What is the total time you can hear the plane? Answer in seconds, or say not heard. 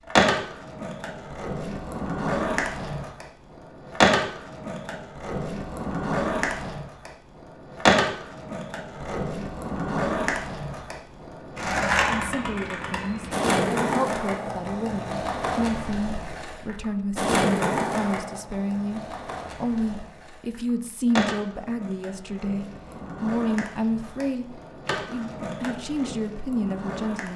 not heard.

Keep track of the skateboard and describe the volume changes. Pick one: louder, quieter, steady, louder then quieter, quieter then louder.
quieter.